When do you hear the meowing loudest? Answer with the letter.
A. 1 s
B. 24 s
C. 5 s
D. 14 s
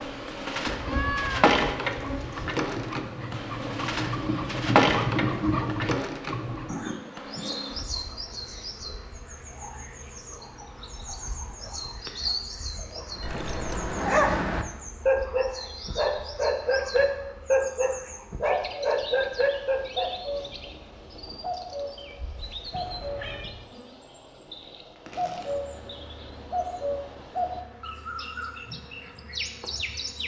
A.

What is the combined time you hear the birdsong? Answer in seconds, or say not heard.
30 s.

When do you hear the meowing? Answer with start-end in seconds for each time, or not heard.
0.7-2.6, 13.2-14.0, 22.7-23.6.